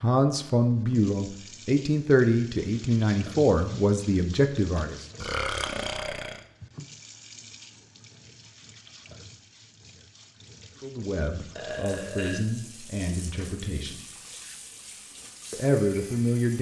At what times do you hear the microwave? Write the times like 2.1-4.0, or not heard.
not heard.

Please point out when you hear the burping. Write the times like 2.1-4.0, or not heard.
5.2-6.5, 11.6-13.5.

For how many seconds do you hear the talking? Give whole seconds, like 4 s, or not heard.
9 s.